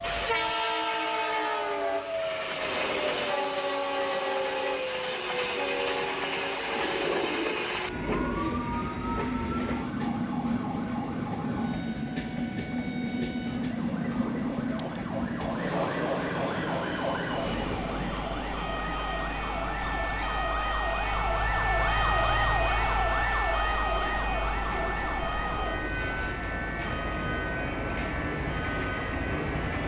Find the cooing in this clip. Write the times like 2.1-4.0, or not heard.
6.8-8.7, 23.9-26.4.